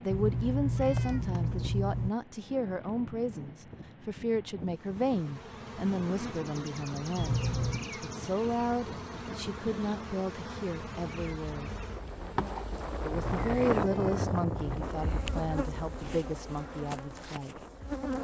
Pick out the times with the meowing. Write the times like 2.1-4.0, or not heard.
0.1-2.1, 7.2-7.8, 13.2-14.6.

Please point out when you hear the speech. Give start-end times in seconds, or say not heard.
0.0-7.4, 8.0-11.7, 13.0-17.6.